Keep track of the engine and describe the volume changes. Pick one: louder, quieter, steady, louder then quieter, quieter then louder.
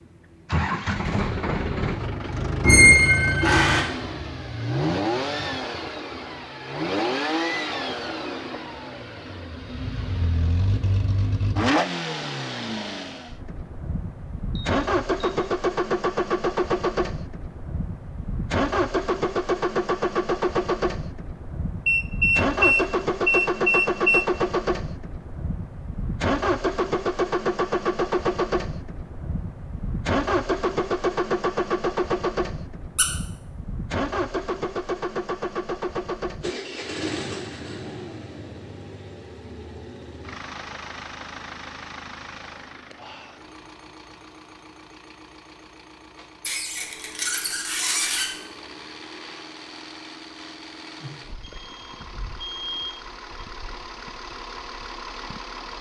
quieter.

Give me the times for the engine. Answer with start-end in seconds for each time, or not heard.
0.5-55.7.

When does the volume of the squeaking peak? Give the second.
3 s.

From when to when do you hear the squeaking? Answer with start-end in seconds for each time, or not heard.
2.6-3.9, 46.4-48.3.